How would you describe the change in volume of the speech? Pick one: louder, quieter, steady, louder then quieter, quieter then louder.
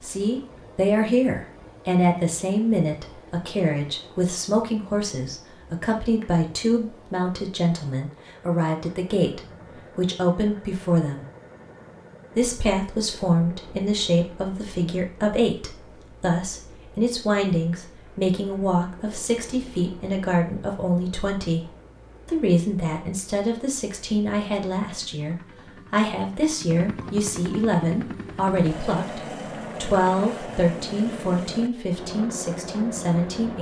steady.